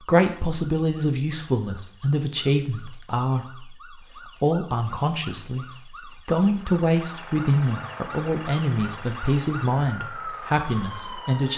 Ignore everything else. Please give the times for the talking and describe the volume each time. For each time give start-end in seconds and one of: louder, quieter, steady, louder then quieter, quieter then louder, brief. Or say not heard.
0.0-11.5 steady.